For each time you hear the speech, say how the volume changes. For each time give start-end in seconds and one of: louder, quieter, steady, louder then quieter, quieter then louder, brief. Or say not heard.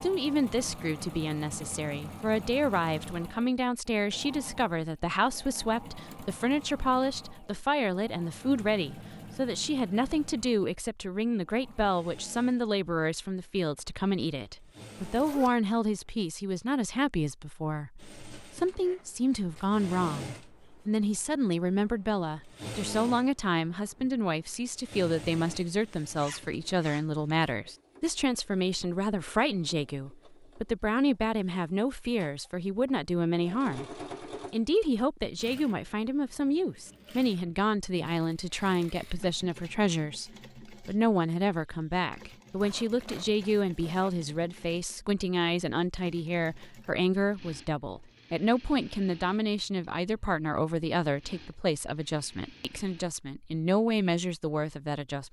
0.0-55.2 steady.